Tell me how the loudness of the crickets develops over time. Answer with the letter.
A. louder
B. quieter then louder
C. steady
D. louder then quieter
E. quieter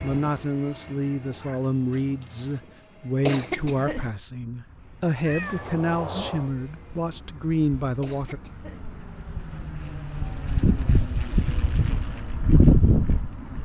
A.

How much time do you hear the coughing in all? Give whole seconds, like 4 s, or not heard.
2 s.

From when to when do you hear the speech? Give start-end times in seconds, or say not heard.
0.0-8.4.